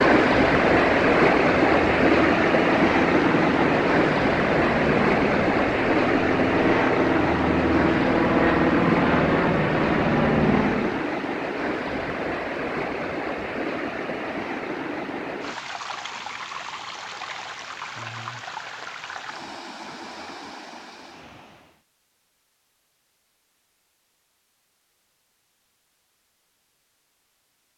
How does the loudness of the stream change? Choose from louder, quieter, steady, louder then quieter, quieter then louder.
quieter.